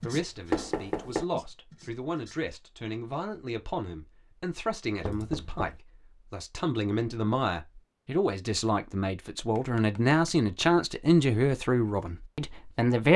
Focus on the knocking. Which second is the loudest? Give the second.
1 s.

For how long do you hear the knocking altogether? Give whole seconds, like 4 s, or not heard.
2 s.